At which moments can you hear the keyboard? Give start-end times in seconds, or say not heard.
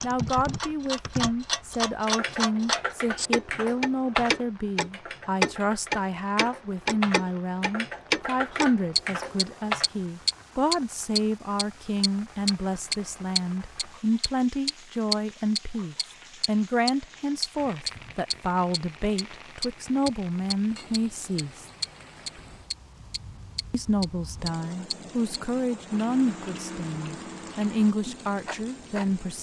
0.0-10.0.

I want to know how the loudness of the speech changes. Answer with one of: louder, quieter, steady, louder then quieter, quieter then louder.
steady.